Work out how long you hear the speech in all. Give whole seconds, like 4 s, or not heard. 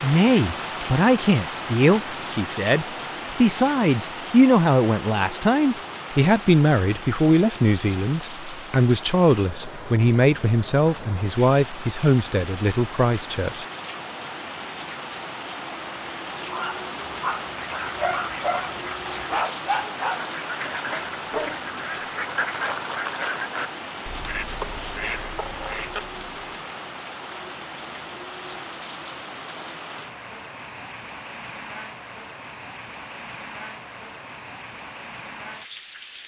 14 s.